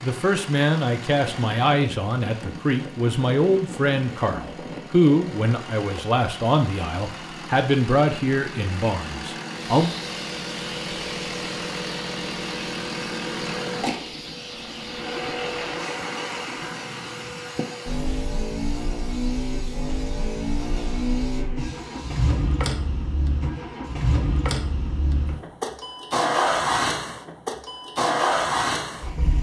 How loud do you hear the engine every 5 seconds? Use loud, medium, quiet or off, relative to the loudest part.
medium, medium, medium, medium, loud, loud.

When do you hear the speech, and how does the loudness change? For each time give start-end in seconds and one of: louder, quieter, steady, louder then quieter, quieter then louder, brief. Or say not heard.
0.0-9.9 steady.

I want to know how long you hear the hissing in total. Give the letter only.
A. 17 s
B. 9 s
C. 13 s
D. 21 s
C.